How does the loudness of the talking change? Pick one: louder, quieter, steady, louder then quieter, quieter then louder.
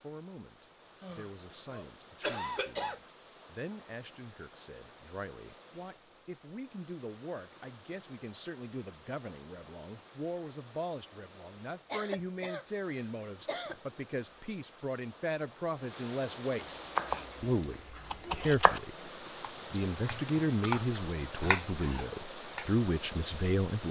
louder.